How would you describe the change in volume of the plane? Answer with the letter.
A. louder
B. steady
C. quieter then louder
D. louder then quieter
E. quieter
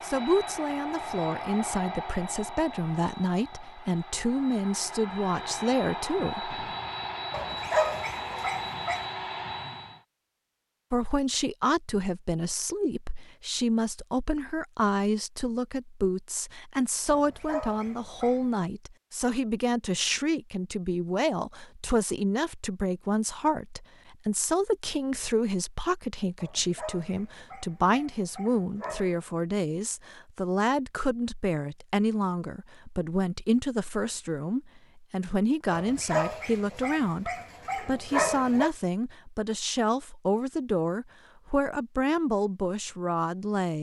C.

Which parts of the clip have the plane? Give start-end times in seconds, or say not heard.
0.0-10.1.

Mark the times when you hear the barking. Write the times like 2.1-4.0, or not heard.
7.3-9.1, 17.1-18.7, 26.4-29.2, 35.7-38.7.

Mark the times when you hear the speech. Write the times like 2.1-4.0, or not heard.
0.0-6.6, 10.9-43.7.